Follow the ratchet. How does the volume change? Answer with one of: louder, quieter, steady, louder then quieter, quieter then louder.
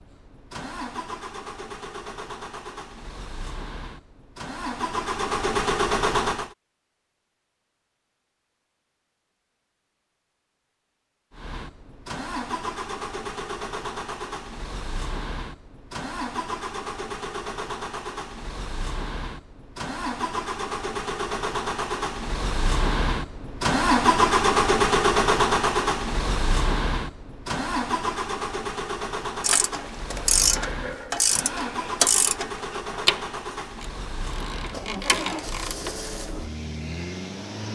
quieter then louder.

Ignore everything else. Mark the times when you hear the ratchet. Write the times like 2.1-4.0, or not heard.
29.4-36.3.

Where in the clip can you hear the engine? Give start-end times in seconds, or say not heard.
0.0-6.5, 11.3-37.7.